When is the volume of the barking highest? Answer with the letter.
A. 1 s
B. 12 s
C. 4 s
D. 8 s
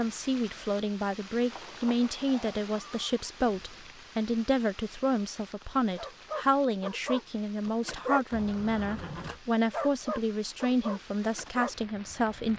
D.